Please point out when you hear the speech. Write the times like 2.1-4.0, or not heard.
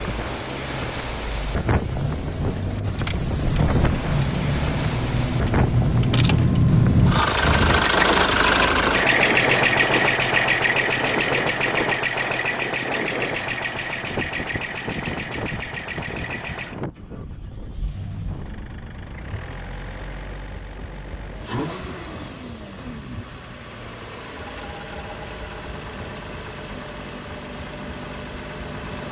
not heard.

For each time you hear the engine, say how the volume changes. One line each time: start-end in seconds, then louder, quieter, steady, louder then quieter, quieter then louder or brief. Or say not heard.
0.1-29.0 louder then quieter.